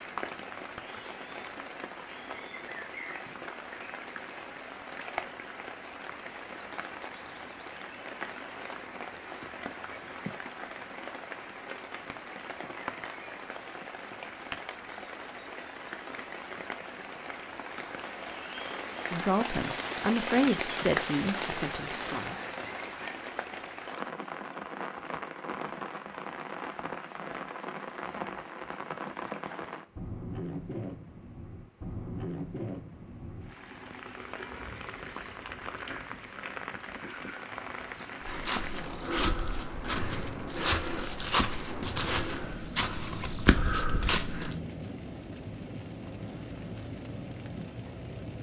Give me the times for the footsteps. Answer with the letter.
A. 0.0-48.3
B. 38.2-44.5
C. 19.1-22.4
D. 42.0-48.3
B.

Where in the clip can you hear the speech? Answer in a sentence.
You can hear the speech from 19.1 to 22.4 s.